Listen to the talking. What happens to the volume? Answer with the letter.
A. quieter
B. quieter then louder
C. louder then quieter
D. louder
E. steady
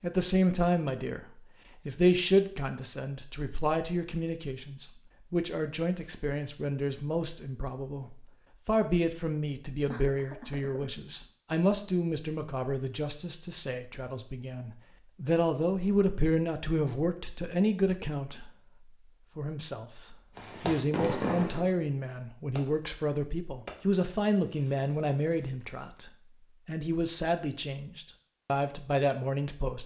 E.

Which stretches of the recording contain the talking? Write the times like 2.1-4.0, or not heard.
0.0-18.5, 19.4-29.8.